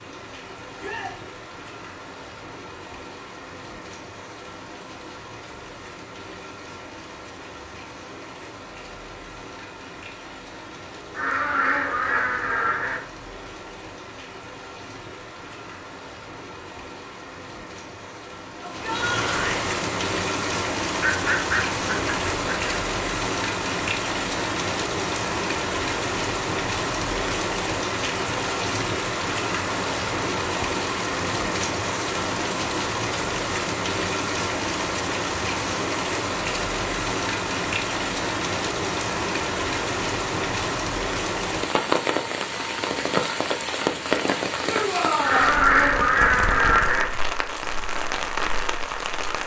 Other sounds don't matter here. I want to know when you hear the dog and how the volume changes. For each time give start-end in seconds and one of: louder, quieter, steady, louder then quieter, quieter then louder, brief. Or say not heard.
not heard.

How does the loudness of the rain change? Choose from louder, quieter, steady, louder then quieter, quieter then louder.
louder.